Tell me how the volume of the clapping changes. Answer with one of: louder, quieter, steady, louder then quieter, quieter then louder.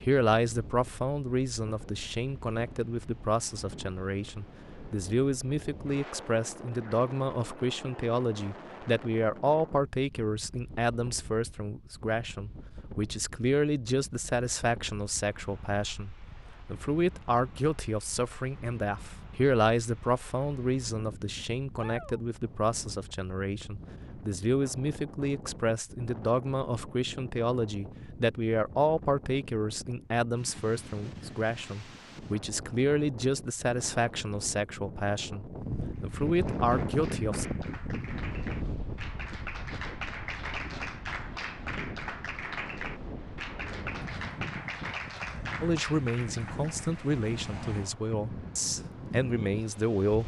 louder.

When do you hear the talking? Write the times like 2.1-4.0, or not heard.
0.0-37.5, 45.6-50.2.